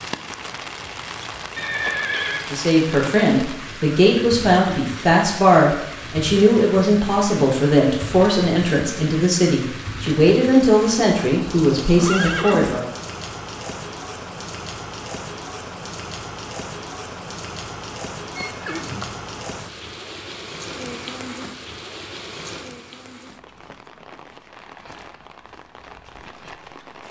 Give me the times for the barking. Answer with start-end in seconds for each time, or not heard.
not heard.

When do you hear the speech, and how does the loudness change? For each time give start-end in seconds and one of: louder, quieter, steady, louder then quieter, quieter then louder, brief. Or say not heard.
2.5-12.8 steady.